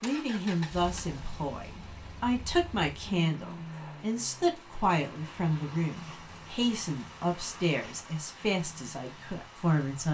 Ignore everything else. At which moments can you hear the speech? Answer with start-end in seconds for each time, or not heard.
0.0-10.0.